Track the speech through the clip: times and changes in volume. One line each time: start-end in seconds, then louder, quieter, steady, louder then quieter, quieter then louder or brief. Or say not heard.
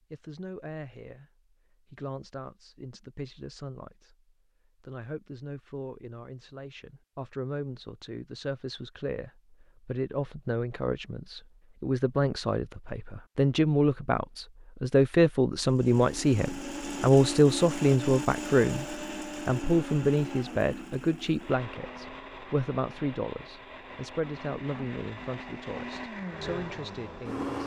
0.1-27.6 louder then quieter.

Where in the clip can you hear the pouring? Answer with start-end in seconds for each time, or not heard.
not heard.